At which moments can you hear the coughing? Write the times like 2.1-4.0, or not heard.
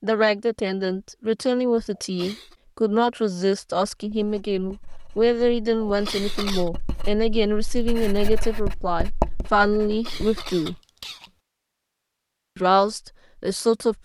1.9-2.5, 5.8-6.7, 9.8-11.3.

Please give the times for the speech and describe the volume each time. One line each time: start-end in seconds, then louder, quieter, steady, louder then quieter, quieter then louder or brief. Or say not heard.
0.0-10.8 steady
12.6-13.9 brief.